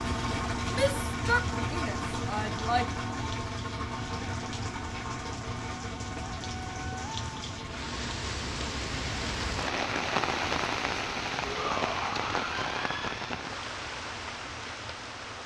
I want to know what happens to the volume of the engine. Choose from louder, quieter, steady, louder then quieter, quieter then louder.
quieter.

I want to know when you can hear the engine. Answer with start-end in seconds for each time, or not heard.
0.0-15.4.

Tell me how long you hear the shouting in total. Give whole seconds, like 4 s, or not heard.
4 s.